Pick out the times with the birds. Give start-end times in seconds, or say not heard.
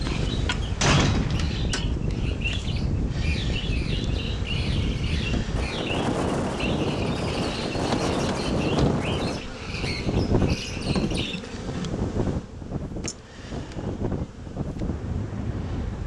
0.0-11.6.